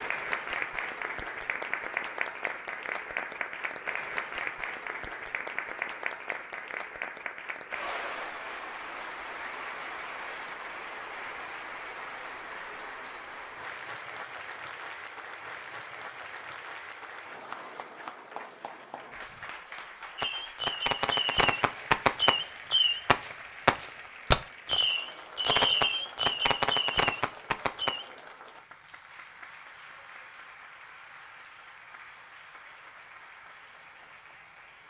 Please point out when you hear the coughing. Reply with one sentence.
You can't hear the coughing here.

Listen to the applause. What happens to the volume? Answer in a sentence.
The volume of the applause goes down.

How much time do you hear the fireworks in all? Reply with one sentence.
You can hear the fireworks for 8 seconds altogether.